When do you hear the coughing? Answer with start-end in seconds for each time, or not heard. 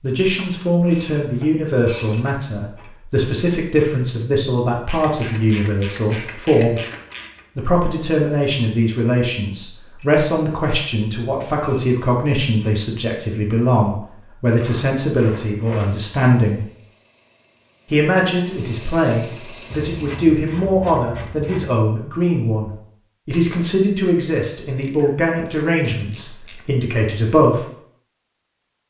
not heard.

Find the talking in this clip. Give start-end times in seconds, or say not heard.
0.0-6.8, 7.5-16.6, 17.9-27.6.